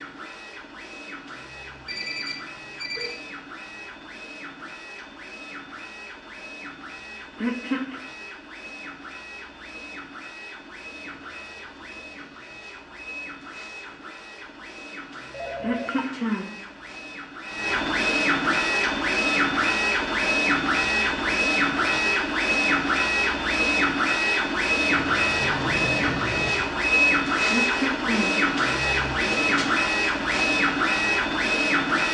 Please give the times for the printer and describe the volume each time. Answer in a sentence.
The printer can be heard from 0.0 to 32.0 s, getting louder.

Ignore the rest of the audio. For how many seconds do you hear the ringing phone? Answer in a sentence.
The ringing phone can be heard for 4 seconds in total.